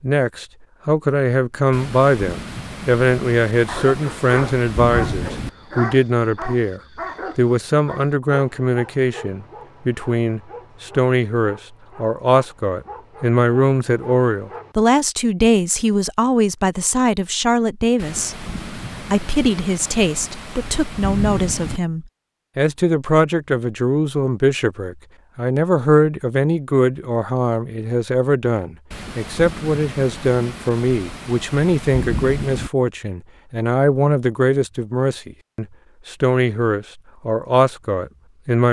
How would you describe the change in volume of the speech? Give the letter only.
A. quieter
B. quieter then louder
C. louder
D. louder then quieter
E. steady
E.